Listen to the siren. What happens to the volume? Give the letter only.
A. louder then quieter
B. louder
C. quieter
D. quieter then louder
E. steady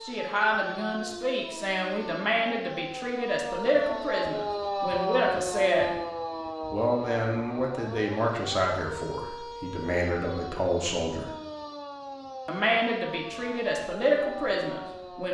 A.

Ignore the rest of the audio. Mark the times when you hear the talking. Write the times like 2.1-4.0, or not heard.
0.0-6.0, 6.7-11.3, 12.4-15.2.